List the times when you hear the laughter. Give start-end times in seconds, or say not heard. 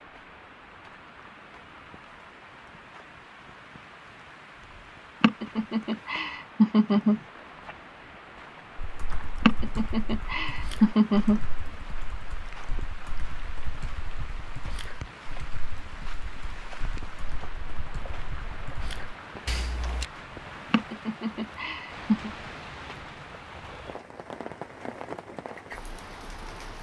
5.2-7.2, 9.4-11.4, 20.7-22.3.